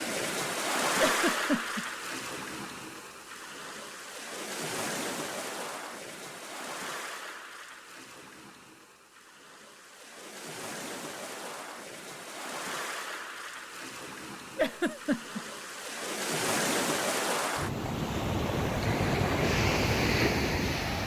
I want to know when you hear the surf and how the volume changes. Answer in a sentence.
You can hear the surf from 0.0 to 21.0 s, getting quieter then louder.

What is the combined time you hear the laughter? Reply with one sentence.
You can hear the laughter for 2 seconds altogether.